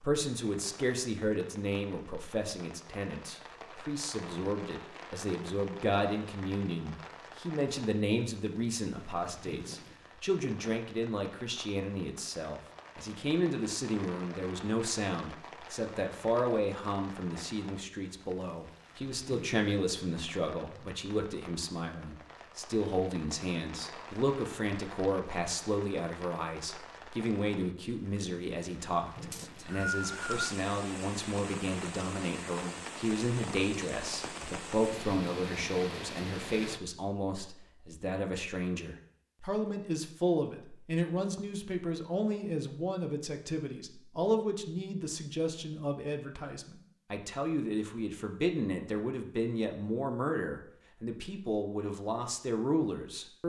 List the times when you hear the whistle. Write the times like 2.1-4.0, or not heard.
29.3-30.6.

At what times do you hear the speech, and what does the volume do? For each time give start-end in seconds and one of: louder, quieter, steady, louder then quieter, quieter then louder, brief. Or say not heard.
0.0-53.4 steady.